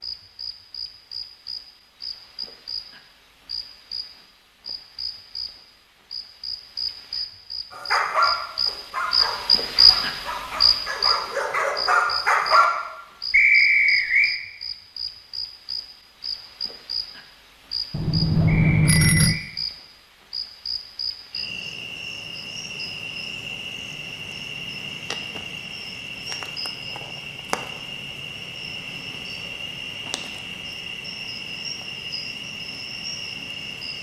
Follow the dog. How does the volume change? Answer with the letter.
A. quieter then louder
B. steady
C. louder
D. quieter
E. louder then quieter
A.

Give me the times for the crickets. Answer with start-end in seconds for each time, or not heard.
0.0-33.9.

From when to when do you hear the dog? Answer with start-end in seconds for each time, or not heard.
7.7-12.7.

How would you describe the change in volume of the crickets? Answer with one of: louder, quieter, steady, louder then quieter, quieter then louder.
louder then quieter.